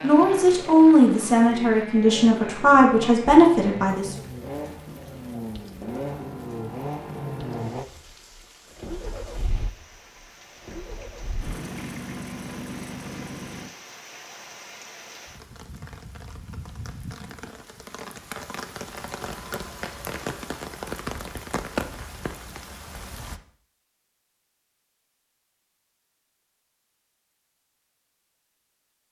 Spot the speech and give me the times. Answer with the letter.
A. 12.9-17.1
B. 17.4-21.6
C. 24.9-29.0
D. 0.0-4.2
D.